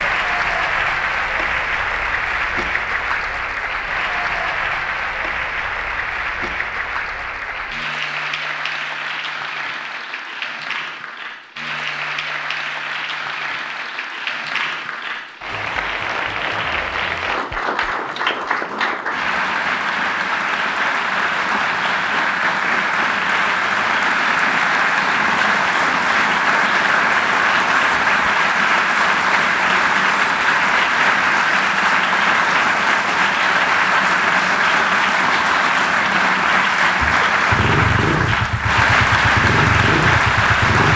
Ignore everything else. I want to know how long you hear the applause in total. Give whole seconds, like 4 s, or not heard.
41 s.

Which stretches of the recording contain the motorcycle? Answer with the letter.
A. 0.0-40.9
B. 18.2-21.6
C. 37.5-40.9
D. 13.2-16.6
C.